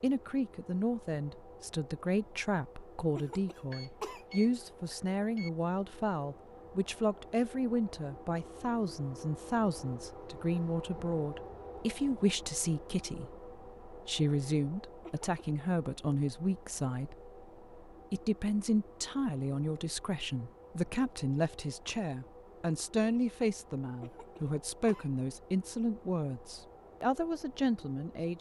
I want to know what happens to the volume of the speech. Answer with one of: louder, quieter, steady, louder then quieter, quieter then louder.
steady.